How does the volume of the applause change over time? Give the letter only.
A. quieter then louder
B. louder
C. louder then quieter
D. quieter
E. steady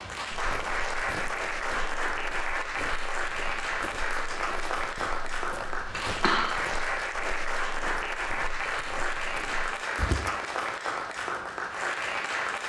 E.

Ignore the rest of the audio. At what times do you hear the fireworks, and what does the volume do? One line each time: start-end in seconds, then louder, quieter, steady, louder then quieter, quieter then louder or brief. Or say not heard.
not heard.